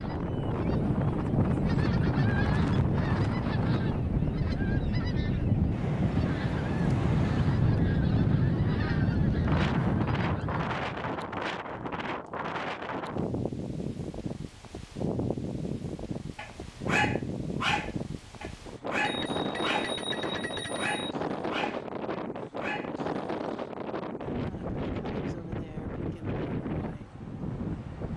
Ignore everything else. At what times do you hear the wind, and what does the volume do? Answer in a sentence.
The wind can be heard from 0.0 to 28.1 s, at a steady volume.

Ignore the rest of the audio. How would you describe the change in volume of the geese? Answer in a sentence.
The loudness of the geese stays about the same.